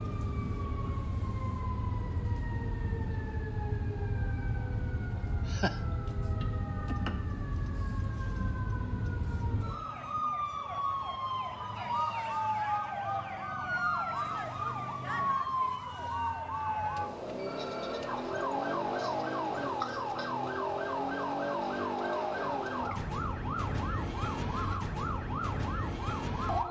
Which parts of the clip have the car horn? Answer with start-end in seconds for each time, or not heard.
not heard.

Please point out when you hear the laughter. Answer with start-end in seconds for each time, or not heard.
5.2-5.8.